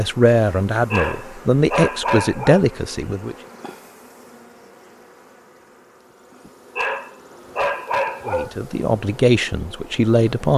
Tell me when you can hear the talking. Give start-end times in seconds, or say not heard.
0.0-3.4, 8.2-10.5.